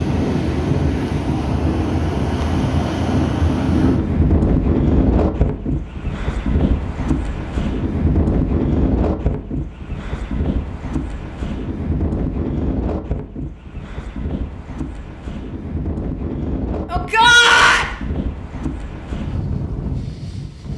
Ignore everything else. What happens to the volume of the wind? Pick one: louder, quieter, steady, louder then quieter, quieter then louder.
quieter.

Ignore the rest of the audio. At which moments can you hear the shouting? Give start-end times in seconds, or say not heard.
16.9-17.9.